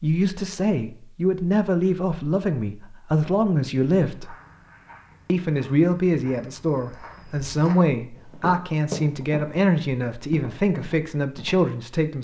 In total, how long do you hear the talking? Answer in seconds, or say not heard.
11 s.